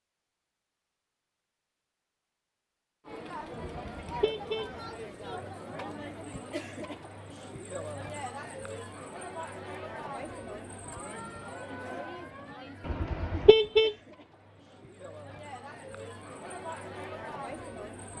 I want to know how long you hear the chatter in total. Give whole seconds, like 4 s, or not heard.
15 s.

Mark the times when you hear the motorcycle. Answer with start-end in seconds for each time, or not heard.
not heard.